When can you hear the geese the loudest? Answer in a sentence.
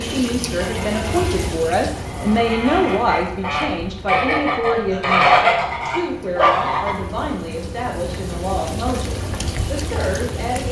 The loudest moment of the geese is at 5 seconds.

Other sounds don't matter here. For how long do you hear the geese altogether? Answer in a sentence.
The geese can be heard for 7 seconds in total.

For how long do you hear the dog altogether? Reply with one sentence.
The dog can be heard for 2 seconds in total.